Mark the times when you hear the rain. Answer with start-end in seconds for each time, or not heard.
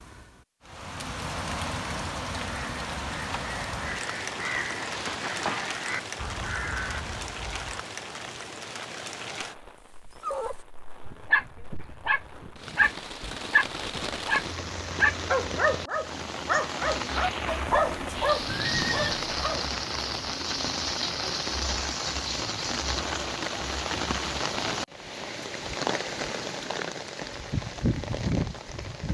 0.0-29.1.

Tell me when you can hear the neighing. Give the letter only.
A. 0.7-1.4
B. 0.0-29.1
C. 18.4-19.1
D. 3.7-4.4
C.